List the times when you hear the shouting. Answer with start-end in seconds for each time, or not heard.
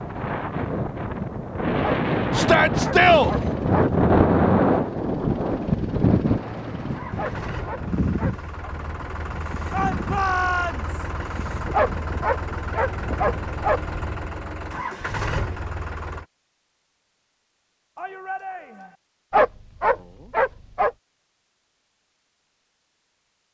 2.4-3.3, 9.7-11.1, 17.9-18.9.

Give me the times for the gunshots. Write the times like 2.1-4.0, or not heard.
not heard.